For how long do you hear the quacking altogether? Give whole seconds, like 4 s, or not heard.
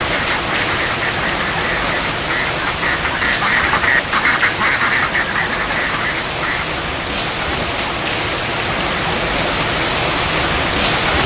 7 s.